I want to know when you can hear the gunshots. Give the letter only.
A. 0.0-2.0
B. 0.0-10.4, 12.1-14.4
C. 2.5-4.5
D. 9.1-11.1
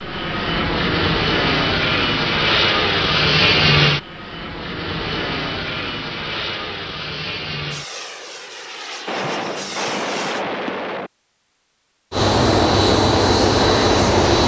D.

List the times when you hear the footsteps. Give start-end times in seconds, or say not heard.
not heard.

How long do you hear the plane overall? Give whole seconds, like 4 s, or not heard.
13 s.